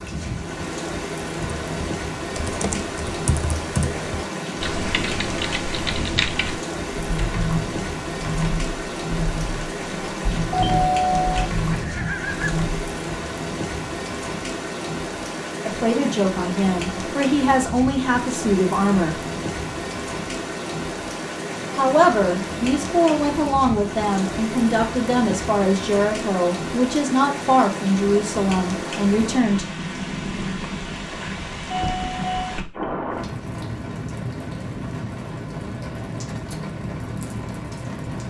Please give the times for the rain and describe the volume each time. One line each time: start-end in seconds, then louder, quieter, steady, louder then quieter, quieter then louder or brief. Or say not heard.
0.0-38.2 steady.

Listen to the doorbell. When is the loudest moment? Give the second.
11 s.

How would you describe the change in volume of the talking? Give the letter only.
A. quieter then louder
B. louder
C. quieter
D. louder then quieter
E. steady
E.